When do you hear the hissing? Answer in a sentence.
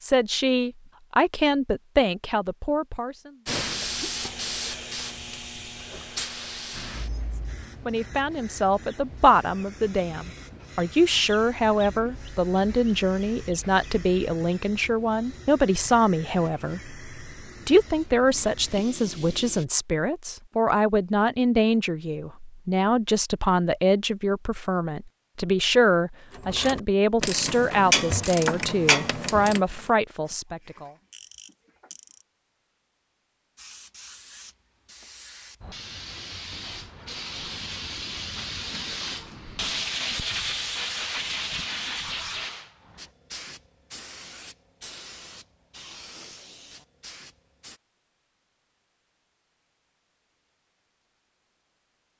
You can hear the hissing from 3.5 to 19.6 s and from 33.5 to 47.8 s.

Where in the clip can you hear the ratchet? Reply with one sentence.
The ratchet can be heard from 26.4 to 32.2 s.